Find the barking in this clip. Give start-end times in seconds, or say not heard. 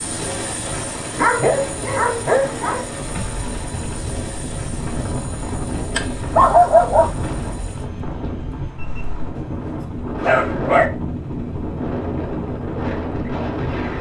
1.1-2.9, 6.0-7.5, 9.8-10.9.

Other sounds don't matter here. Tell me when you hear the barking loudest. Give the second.
7 s.